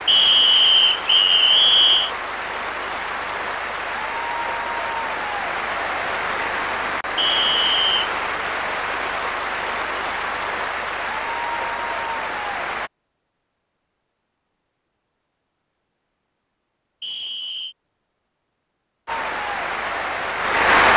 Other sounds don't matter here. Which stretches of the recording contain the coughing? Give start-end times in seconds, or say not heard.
not heard.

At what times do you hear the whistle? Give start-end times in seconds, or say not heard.
0.1-2.1, 7.2-8.1, 17.0-17.8.